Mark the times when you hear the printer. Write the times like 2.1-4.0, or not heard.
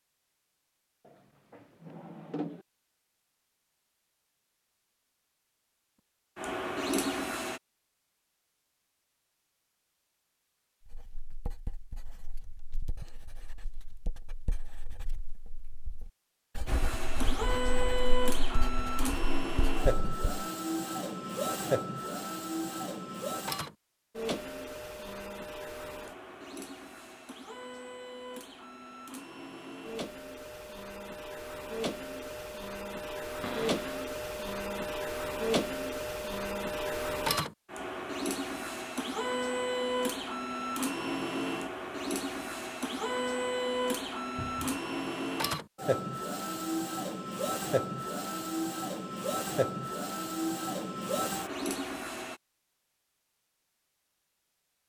6.3-7.6, 16.6-52.4.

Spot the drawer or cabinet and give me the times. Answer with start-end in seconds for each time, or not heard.
1.1-2.6, 33.4-34.0, 44.4-44.8.